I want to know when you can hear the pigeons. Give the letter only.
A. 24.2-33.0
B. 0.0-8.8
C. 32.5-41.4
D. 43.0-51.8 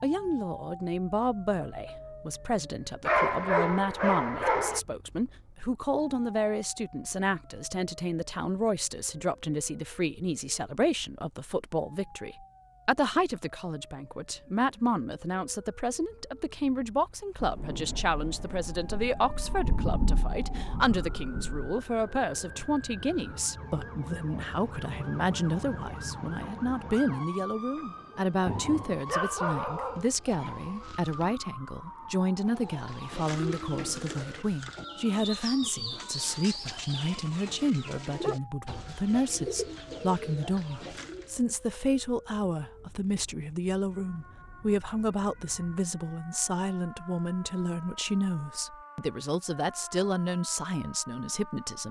C.